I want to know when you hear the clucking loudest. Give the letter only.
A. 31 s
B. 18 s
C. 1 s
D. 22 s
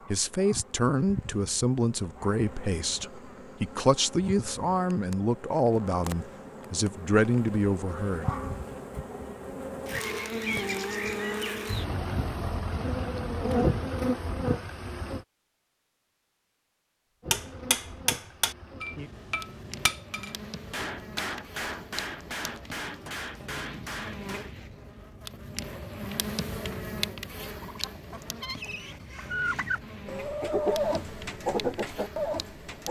A.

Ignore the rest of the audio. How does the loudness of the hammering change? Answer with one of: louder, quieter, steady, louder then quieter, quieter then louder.
quieter.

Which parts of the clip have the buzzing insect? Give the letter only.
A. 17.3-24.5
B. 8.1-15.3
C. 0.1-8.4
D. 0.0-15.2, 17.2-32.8
D.